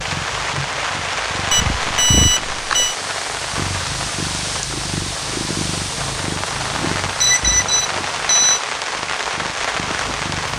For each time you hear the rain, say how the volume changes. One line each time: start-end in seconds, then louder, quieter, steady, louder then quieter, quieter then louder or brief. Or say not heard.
0.0-10.5 steady.